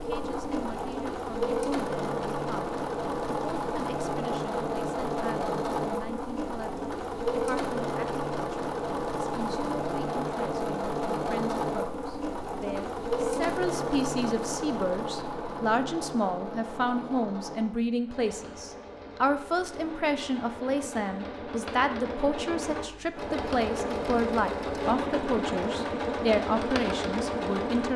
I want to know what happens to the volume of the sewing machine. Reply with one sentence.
The volume of the sewing machine goes down, then up.